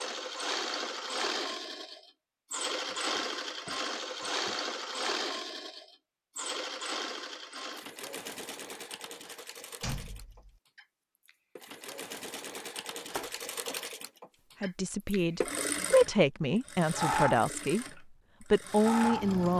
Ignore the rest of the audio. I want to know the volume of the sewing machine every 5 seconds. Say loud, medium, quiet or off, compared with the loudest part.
loud, medium, medium, loud.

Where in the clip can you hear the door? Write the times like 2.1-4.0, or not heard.
2.9-4.5, 9.8-10.6, 13.2-13.8.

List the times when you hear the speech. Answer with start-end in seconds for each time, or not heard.
14.6-17.9, 18.5-19.5.